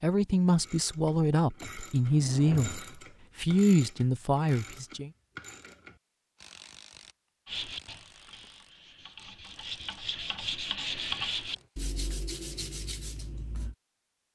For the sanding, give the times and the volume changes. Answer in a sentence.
You can hear the sanding from 7.5 to 13.8 s, getting louder then quieter.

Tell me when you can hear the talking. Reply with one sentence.
You can hear the talking from 0.0 to 5.1 s.